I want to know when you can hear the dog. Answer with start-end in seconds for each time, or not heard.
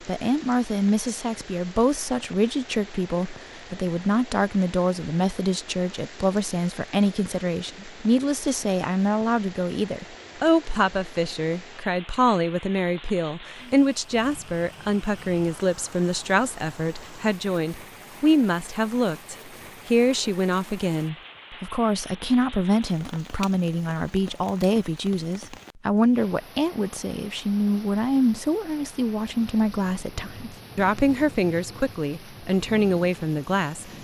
not heard.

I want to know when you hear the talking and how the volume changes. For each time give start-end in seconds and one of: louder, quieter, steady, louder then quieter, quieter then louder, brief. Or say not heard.
0.1-33.9 steady.